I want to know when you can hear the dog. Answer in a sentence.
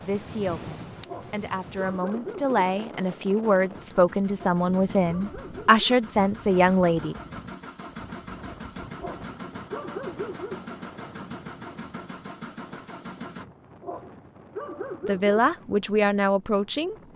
The dog can be heard from 1.1 to 2.5 s, from 4.3 to 5.9 s, from 8.9 to 10.6 s and from 13.8 to 15.4 s.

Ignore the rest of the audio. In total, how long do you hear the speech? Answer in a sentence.
The speech can be heard for 9 seconds in total.